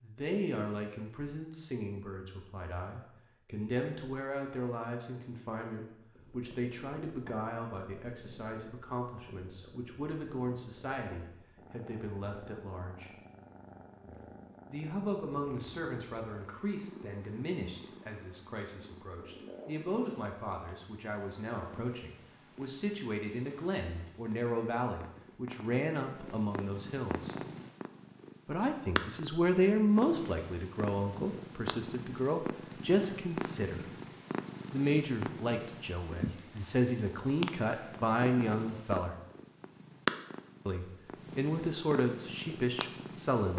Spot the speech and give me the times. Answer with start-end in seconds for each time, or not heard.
0.0-13.2, 14.7-27.4, 28.4-33.9, 34.7-39.1, 40.6-43.5.